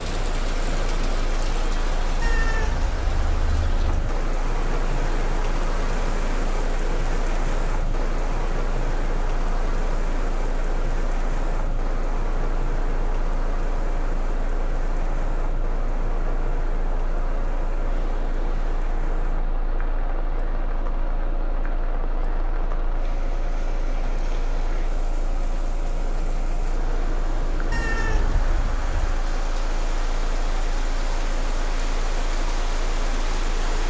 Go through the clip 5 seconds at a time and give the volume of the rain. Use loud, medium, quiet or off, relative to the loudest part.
loud, loud, loud, medium, medium, medium, loud.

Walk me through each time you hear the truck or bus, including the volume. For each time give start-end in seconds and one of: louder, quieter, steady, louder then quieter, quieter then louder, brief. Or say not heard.
0.0-33.8 steady.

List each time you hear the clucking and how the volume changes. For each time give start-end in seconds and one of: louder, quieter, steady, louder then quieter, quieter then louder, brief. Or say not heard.
not heard.